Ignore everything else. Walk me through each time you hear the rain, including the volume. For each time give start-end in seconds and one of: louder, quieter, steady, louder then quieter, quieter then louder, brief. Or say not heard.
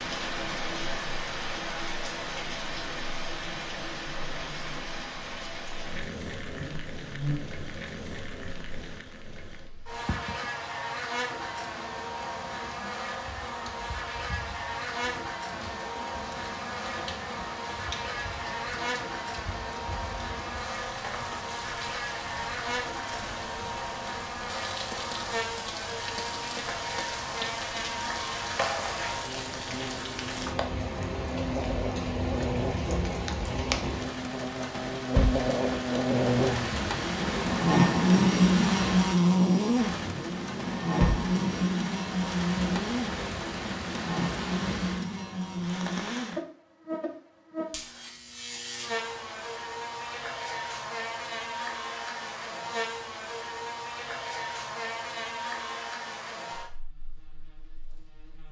0.0-46.4 quieter then louder.